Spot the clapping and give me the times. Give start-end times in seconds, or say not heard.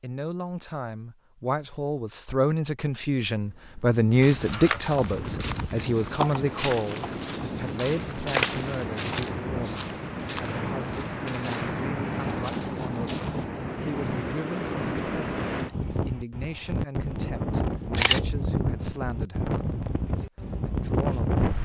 not heard.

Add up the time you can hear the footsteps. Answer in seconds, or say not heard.
9 s.